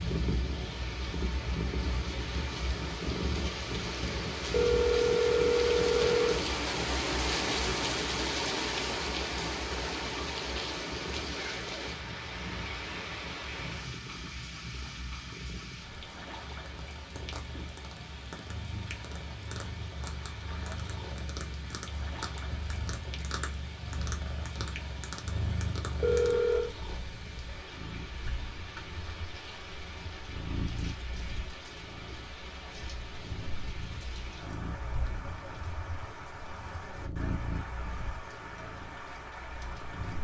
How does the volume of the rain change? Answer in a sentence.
The volume of the rain goes down.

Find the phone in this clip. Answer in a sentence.
You can hear the phone from 4.5 to 6.4 s and from 26.0 to 26.8 s.